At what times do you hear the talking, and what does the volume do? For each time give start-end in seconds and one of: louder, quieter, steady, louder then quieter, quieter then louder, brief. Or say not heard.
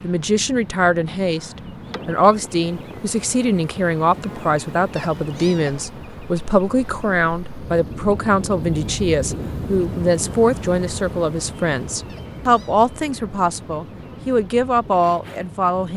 0.0-15.9 steady.